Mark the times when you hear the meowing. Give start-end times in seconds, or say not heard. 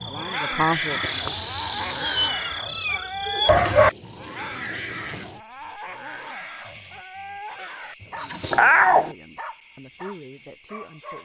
2.0-3.9, 8.5-9.2.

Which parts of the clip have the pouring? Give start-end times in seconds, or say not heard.
0.8-2.3, 8.0-8.6.